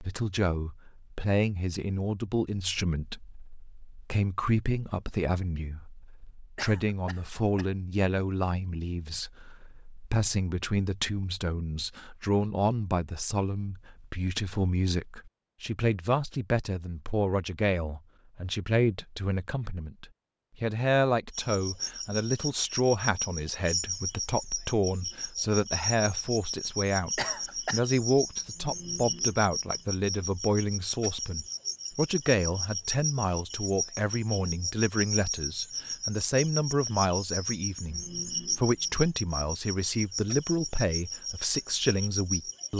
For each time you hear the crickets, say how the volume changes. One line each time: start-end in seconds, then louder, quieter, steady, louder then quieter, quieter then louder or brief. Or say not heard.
21.3-42.7 steady.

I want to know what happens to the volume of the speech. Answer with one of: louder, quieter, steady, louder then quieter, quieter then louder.
steady.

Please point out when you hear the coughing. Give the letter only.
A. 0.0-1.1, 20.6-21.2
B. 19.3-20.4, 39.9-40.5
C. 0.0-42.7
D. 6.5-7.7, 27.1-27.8
D.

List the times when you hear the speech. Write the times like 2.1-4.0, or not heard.
0.0-42.7.